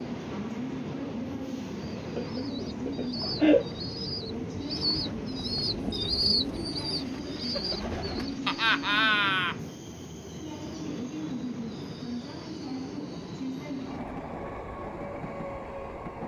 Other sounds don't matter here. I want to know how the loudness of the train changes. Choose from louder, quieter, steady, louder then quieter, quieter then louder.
steady.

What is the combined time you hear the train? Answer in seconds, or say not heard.
16 s.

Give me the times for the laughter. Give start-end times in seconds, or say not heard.
2.1-3.6, 8.4-9.6.